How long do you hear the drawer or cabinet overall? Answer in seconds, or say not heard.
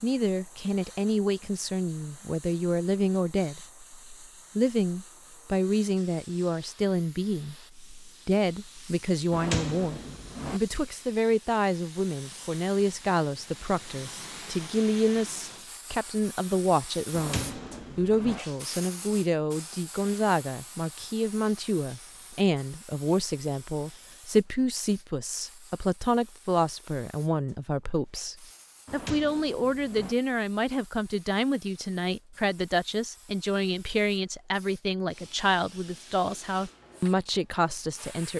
4 s.